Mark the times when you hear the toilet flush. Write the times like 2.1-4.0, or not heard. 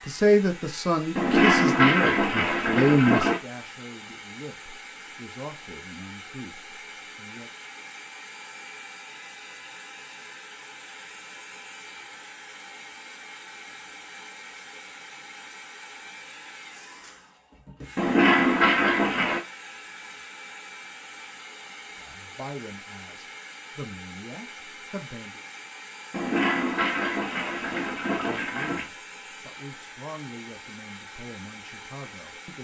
1.1-3.4, 17.9-19.4, 26.1-28.9.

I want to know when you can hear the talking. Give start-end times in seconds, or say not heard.
0.1-7.5, 21.9-25.4, 28.1-32.5.